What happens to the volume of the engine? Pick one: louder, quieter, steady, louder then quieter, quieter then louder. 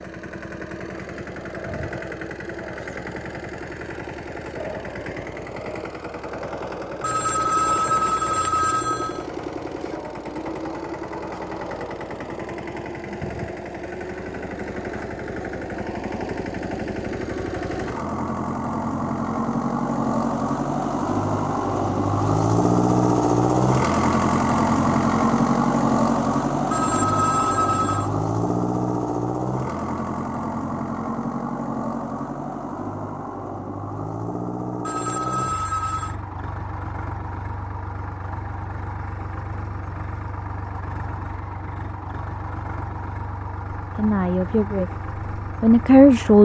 louder then quieter.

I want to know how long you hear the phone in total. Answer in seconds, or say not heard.
5 s.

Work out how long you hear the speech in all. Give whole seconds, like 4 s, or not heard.
2 s.